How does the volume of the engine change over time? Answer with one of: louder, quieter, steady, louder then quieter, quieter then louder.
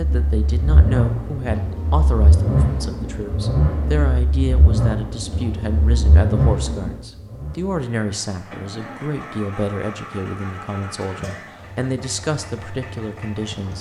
quieter.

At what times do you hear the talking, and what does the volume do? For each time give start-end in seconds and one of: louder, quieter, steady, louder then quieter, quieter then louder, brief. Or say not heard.
0.0-13.7 steady.